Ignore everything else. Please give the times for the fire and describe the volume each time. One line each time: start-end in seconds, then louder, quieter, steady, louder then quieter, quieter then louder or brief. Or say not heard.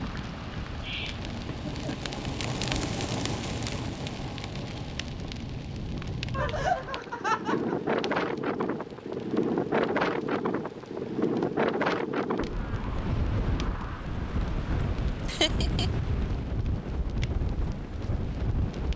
0.0-18.9 quieter.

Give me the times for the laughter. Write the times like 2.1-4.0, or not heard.
0.8-1.9, 6.3-7.8, 15.2-15.9.